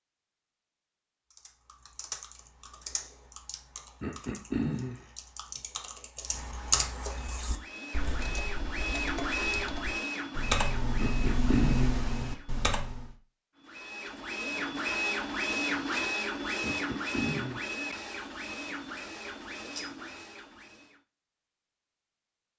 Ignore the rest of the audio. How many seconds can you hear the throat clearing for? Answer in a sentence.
The throat clearing can be heard for 3 seconds in total.